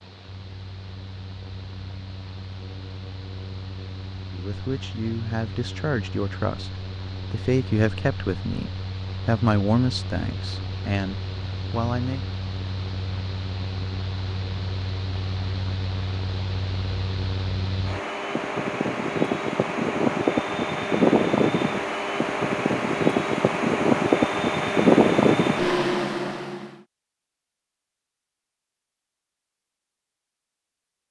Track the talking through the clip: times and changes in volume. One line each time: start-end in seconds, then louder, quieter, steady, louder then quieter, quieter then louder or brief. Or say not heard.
4.3-12.2 louder then quieter.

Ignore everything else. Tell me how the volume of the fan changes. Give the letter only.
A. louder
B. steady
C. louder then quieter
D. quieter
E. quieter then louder
A.